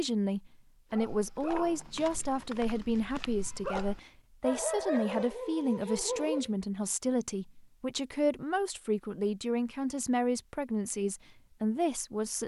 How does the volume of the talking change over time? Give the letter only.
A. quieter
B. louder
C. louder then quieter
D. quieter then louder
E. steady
E.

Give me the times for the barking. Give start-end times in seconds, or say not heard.
0.9-6.5.